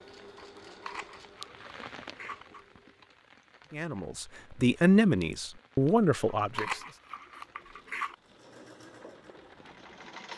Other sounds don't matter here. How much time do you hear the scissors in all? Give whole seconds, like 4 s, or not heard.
4 s.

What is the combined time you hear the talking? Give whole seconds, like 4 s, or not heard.
3 s.